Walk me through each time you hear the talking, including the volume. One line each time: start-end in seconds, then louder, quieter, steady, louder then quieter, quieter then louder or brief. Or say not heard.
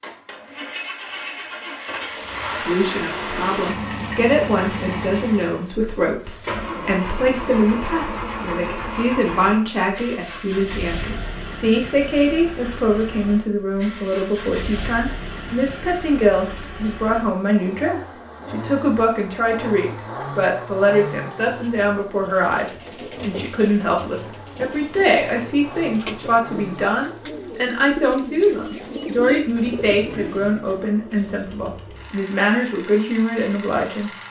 2.5-34.1 steady.